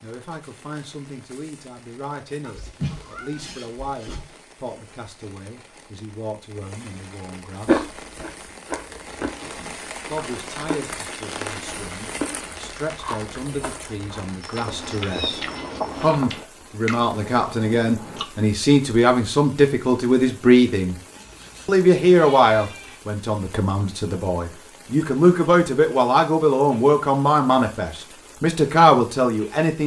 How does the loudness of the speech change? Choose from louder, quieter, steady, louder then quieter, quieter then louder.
louder.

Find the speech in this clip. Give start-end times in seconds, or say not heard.
0.0-7.8, 10.1-15.4, 16.0-20.9, 21.6-29.8.